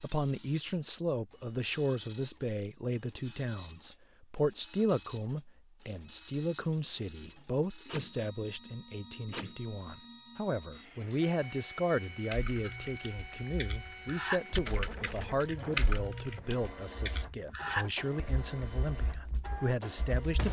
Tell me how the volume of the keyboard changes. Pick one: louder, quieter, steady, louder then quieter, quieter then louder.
louder then quieter.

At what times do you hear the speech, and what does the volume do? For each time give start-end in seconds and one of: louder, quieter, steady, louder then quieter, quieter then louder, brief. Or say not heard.
0.0-20.4 steady.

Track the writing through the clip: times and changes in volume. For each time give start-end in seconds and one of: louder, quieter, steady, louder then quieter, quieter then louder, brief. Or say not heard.
not heard.